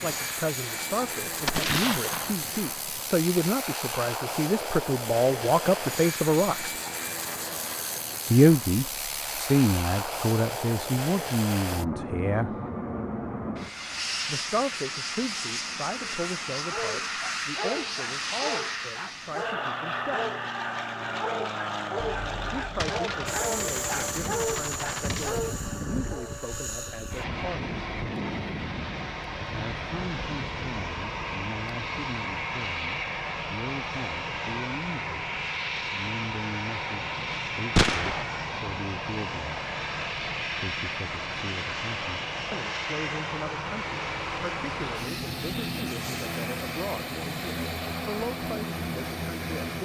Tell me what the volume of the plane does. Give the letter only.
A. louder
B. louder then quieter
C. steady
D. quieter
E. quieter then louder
C.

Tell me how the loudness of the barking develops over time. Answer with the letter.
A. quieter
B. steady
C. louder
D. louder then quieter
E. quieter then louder
B.